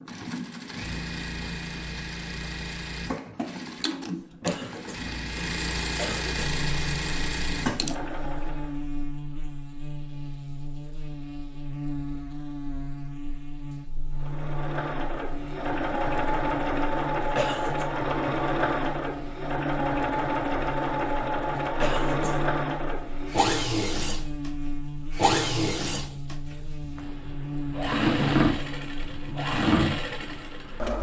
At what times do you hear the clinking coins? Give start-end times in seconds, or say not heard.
not heard.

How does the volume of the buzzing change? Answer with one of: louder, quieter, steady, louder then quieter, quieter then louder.
steady.